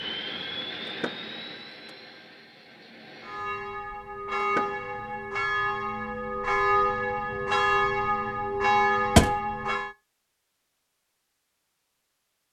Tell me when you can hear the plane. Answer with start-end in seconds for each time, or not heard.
0.0-3.5.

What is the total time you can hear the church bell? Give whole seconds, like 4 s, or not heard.
7 s.